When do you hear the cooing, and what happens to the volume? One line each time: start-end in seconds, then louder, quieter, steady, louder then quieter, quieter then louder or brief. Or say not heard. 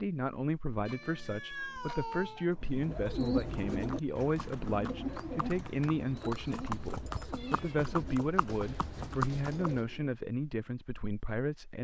2.5-10.1 quieter.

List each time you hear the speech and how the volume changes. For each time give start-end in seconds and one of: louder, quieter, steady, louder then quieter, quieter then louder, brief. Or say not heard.
0.0-11.8 steady.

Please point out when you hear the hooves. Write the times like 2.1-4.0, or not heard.
3.7-9.8.